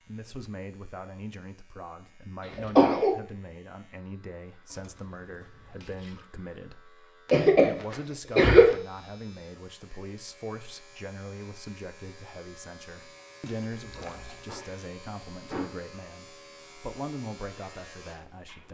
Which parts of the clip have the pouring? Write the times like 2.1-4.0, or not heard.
4.7-6.3, 13.8-14.5.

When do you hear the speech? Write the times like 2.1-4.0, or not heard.
0.1-18.6.